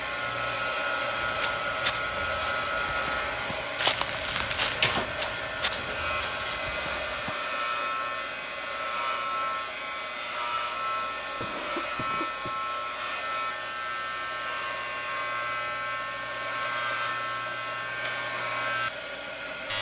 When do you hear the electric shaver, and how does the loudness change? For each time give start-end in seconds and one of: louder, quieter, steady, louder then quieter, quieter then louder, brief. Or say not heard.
0.0-19.7 steady.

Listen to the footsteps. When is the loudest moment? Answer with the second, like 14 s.
4 s.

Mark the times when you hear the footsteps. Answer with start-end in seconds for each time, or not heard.
1.2-7.3.